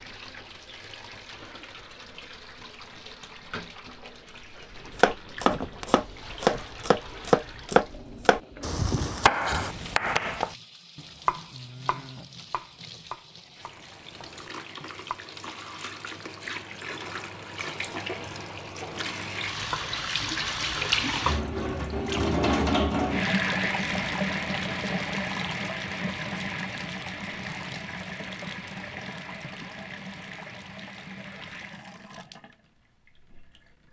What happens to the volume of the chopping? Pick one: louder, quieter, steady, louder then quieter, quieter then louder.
quieter.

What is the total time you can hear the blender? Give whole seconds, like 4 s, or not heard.
not heard.